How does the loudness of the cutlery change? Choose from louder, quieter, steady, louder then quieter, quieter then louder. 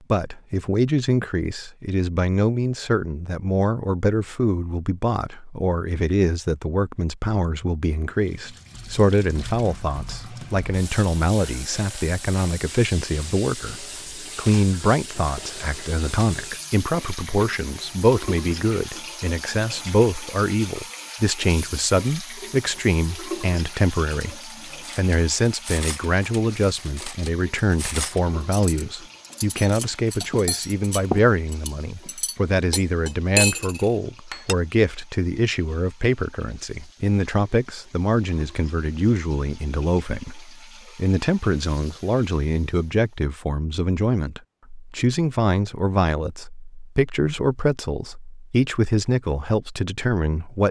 louder.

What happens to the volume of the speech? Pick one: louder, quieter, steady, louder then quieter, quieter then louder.
steady.